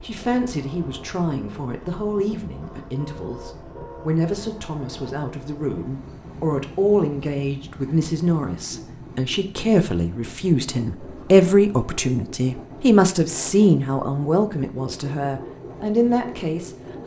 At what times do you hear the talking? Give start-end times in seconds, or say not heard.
0.0-17.0.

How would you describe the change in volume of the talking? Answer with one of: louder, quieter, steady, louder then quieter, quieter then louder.
louder.